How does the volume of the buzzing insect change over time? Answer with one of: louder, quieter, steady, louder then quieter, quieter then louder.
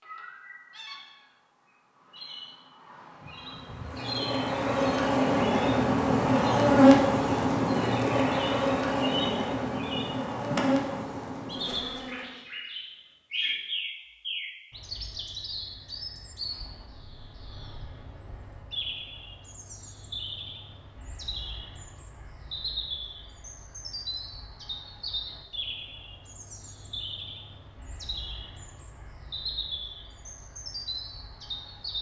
louder then quieter.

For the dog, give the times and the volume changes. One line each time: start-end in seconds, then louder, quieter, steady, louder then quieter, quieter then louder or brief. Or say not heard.
not heard.